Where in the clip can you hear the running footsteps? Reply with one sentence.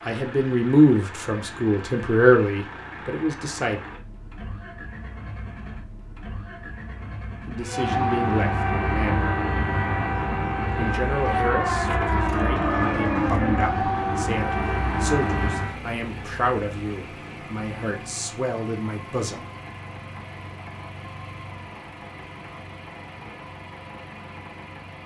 You can't hear the running footsteps here.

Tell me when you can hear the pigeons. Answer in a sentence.
You can't hear the pigeons here.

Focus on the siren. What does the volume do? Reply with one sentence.
The loudness of the siren stays about the same.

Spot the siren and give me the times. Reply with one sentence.
The siren can be heard from 7.7 to 15.8 s.